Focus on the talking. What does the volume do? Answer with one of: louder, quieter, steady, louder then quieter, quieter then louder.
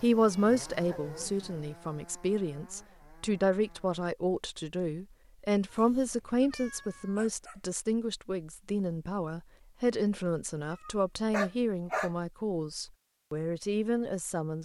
steady.